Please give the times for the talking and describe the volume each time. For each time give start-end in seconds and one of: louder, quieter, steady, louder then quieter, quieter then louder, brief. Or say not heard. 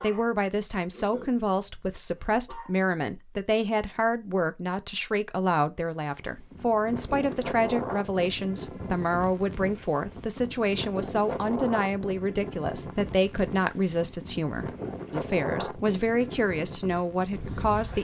0.0-17.9 steady.